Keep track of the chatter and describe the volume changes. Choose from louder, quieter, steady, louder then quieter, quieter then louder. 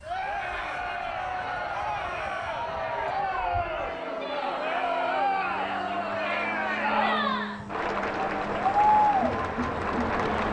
louder.